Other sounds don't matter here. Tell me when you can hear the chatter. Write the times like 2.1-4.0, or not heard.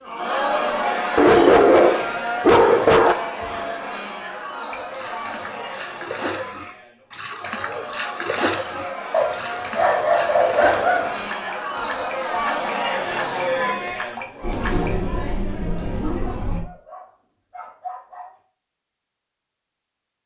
0.0-16.6.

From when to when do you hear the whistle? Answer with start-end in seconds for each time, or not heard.
not heard.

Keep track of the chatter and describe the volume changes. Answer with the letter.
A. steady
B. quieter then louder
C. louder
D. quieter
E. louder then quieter
B.